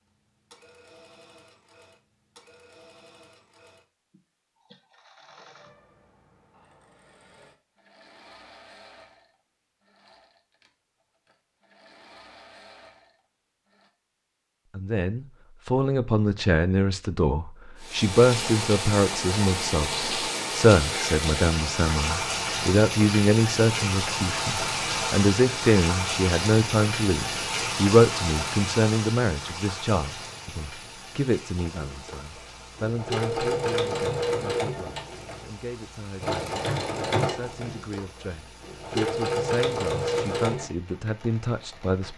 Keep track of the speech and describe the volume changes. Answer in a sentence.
The volume of the speech goes down.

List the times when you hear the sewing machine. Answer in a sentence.
The sewing machine can be heard from 0.1 to 13.9 s and from 31.6 to 40.6 s.